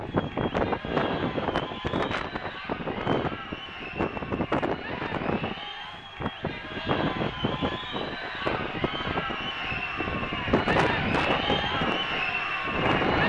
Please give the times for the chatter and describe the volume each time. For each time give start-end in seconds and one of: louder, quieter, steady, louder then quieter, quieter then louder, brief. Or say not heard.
0.0-13.2 louder.